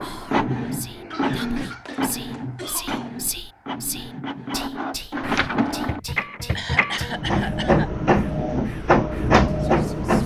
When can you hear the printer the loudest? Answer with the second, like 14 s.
9 s.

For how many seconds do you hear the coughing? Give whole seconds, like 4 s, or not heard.
3 s.